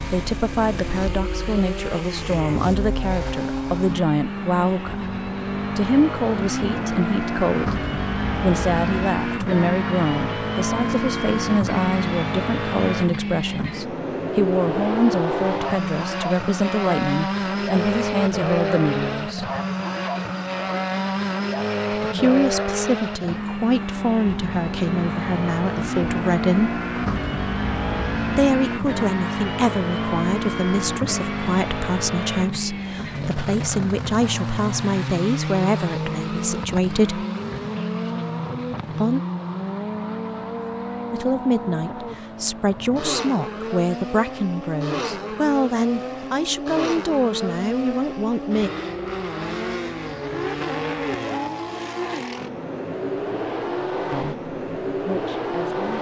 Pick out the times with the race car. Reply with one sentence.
The race car can be heard from 0.0 to 55.9 s.